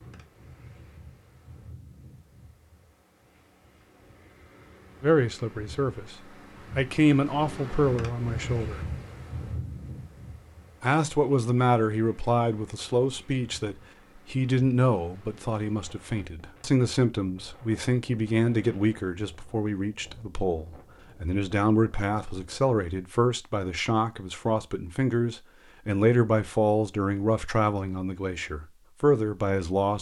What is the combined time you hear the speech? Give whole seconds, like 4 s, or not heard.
23 s.